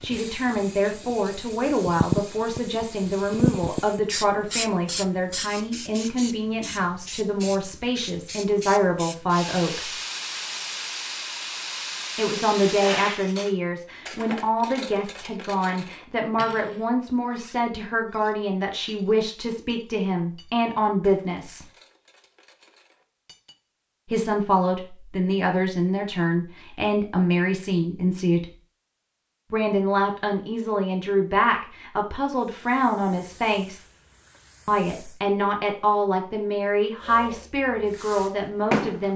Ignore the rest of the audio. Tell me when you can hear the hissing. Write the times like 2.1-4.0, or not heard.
0.0-13.2, 32.4-35.2, 37.0-39.1.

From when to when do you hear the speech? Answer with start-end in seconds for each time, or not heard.
0.0-9.9, 12.2-21.6, 24.1-28.5, 29.5-33.9, 34.6-39.1.